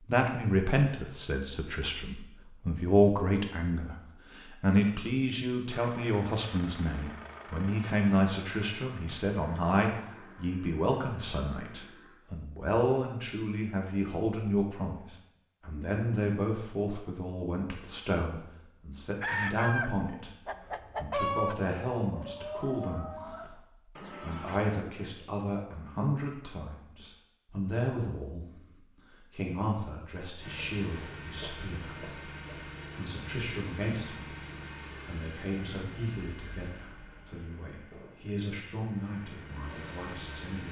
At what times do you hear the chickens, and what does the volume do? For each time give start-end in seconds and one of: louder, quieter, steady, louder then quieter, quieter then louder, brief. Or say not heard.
19.2-24.6 quieter.